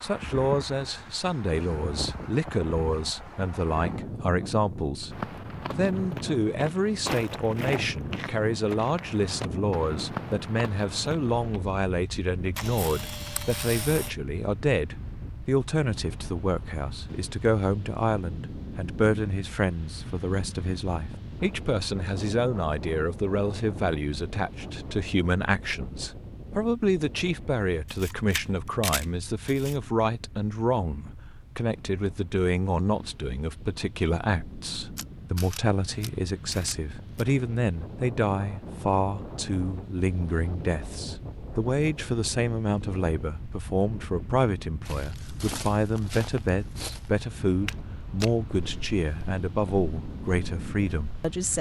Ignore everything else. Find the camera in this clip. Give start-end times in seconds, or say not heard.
12.6-14.1, 27.9-29.8, 35.0-37.2.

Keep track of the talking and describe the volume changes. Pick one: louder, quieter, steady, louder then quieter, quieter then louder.
steady.